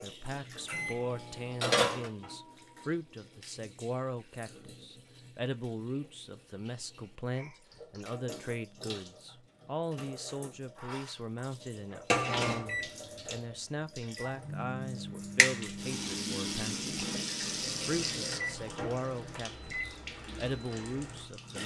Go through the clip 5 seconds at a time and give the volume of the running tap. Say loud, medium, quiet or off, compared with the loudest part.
loud, quiet, loud, loud, medium.